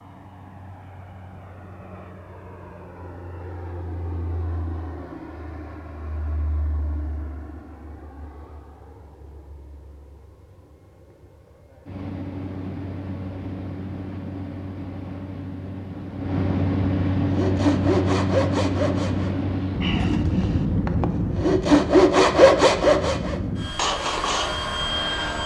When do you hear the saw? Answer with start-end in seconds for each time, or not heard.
17.3-24.6.